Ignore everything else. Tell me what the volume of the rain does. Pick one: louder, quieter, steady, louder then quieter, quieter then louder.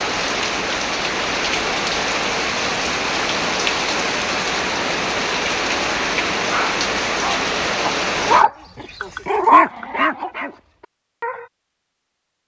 steady.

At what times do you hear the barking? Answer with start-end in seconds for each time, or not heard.
6.3-11.4.